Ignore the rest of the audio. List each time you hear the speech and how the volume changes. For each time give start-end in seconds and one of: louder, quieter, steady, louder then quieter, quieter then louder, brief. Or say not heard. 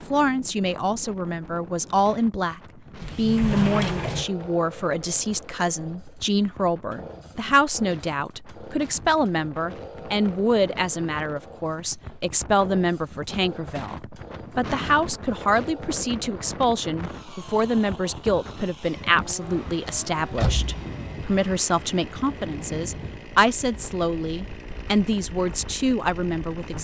0.1-26.7 steady.